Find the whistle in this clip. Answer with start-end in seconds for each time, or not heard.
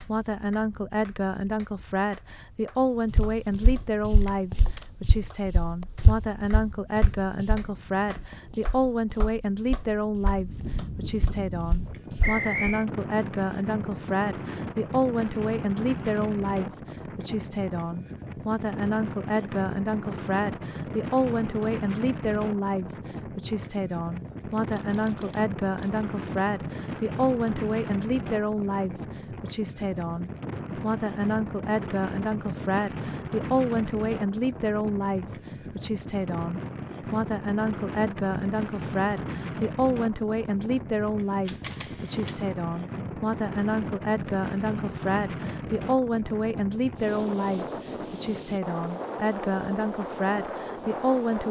12.2-12.8.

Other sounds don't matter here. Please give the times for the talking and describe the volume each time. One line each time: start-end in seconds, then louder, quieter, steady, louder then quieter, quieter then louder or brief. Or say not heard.
0.0-51.4 steady.